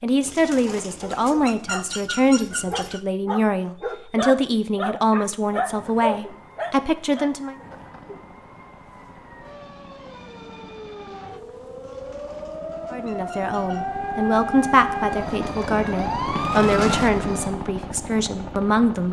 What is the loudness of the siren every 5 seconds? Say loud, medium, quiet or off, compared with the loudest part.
off, quiet, medium, loud.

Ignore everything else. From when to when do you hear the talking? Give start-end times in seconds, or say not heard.
0.0-7.5, 12.9-19.0.